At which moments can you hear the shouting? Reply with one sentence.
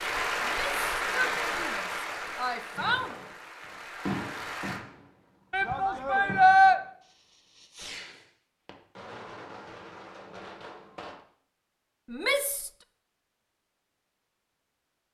You can hear the shouting from 0.4 to 3.1 s, from 5.5 to 6.8 s and from 12.1 to 12.7 s.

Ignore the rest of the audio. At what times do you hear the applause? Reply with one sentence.
You can hear the applause from 0.0 to 4.8 s.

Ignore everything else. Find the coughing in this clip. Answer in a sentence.
You can't hear the coughing here.